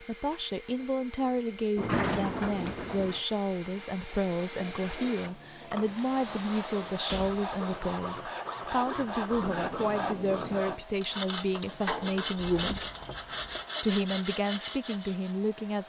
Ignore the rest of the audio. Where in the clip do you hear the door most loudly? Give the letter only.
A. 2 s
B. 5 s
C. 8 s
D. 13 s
A.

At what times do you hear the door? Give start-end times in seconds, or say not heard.
1.8-3.2, 7.0-7.5, 12.3-13.7.